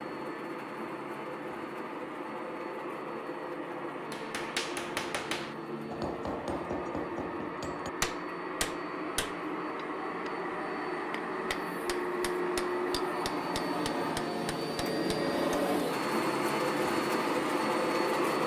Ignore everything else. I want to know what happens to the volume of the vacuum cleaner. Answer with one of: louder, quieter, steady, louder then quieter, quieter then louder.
louder.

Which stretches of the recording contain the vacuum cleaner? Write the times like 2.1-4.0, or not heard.
0.0-18.4.